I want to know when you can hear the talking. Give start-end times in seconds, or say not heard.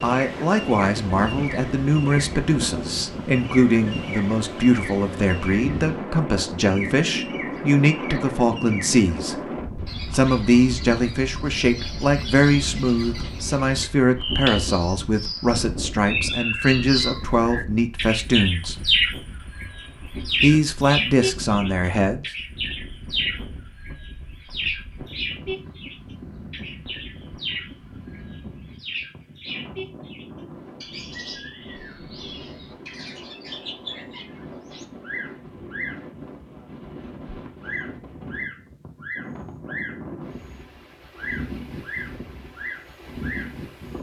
0.0-9.3, 10.1-18.8, 20.4-22.2.